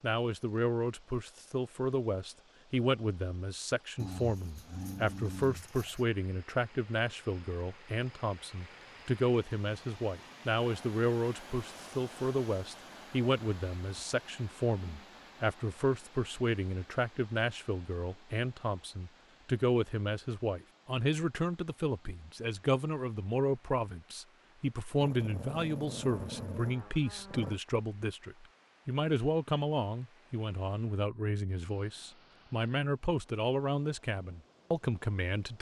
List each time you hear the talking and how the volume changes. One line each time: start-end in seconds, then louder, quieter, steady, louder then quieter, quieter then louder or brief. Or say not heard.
0.0-35.5 steady.